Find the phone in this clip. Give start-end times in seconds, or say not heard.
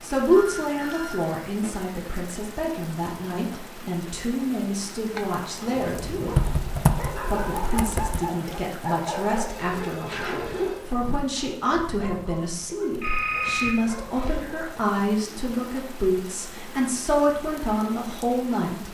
0.2-1.8, 9.5-10.8, 13.0-14.4.